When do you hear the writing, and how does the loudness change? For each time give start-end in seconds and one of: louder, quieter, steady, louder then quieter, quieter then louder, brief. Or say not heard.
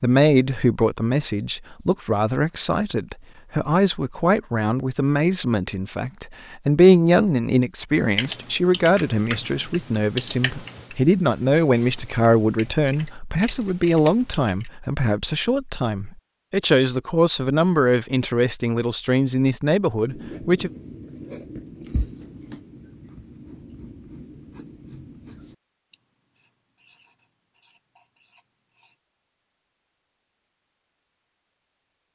20.1-29.0 quieter.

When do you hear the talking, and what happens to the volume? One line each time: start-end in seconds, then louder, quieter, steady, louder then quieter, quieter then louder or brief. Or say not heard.
0.0-20.7 steady.